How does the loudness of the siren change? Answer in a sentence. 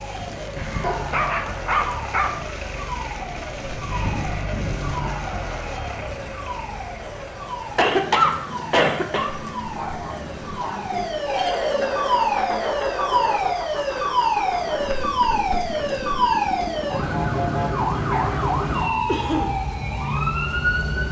The volume of the siren goes up.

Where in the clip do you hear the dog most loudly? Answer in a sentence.
The volume of the dog peaks at 2 seconds.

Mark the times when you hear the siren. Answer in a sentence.
The siren can be heard from 0.0 to 21.0 s.